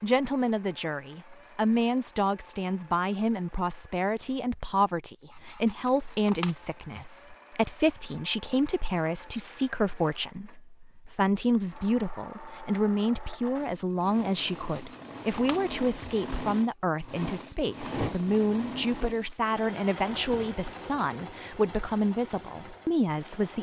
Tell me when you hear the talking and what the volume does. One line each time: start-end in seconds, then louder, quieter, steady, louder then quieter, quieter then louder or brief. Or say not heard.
0.0-23.5 steady.